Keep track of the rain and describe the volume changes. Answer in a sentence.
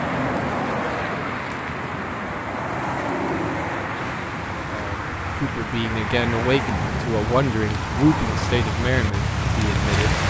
The loudness of the rain goes up.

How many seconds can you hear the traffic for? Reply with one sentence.
You can hear the traffic for 10 seconds altogether.